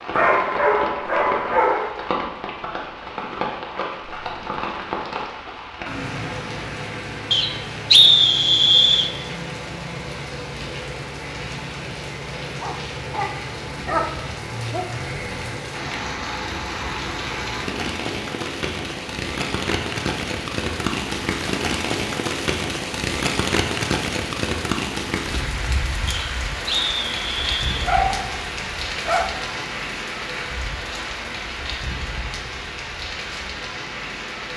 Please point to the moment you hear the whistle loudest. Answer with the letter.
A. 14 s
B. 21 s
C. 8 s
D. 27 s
C.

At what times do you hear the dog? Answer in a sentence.
The dog can be heard from 0.1 to 1.9 s, from 12.6 to 14.8 s, from 27.8 to 28.4 s and from 29.1 to 29.6 s.